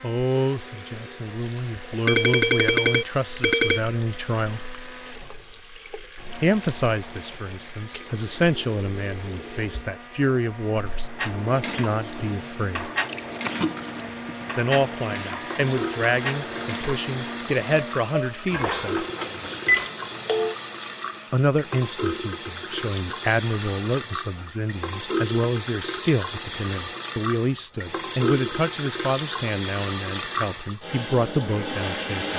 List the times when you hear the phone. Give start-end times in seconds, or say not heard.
2.0-3.8, 19.1-20.6.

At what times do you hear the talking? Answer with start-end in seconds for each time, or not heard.
0.0-4.6, 6.4-12.9, 14.6-19.1, 21.3-32.3.